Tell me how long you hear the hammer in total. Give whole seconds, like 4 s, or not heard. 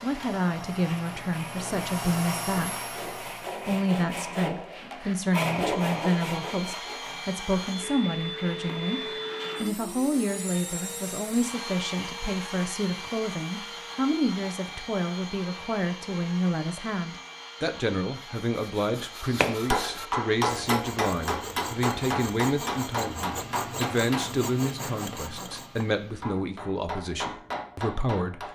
9 s.